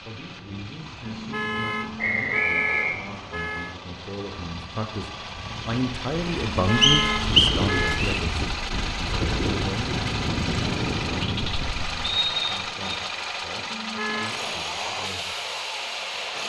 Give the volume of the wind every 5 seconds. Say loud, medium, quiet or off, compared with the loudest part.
quiet, loud, loud, off.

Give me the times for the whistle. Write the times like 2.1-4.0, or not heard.
1.9-3.0, 6.8-8.2, 12.0-13.0.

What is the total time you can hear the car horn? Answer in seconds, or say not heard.
5 s.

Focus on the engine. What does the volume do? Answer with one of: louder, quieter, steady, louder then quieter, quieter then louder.
louder.